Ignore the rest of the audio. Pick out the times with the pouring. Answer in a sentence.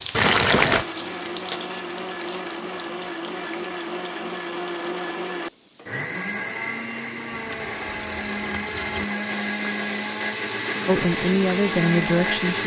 The pouring can be heard from 0.1 to 0.8 s and from 7.3 to 9.1 s.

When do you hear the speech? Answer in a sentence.
The speech can be heard from 10.8 to 12.6 s.